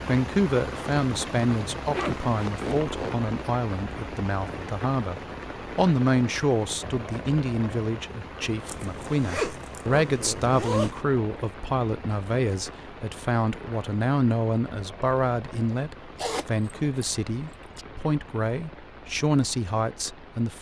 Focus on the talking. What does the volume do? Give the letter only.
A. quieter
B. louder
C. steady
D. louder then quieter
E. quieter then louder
C.